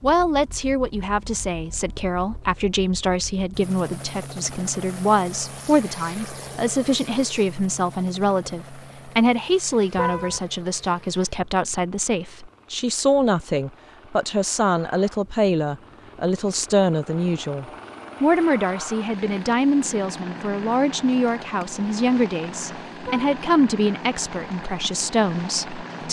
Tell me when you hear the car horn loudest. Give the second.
10 s.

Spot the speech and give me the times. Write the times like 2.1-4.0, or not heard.
0.0-26.0.